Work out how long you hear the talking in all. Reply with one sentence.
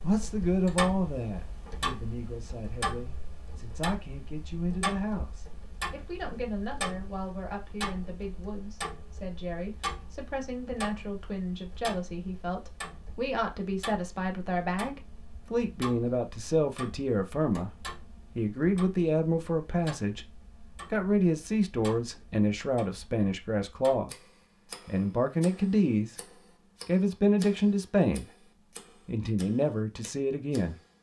The talking can be heard for 29 seconds in total.